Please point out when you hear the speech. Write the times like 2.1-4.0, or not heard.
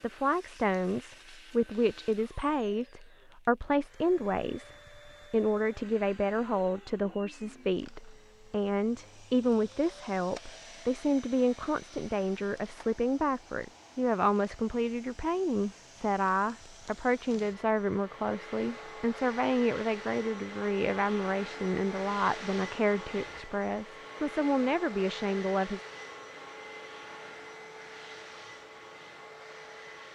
0.0-4.7, 5.3-25.8.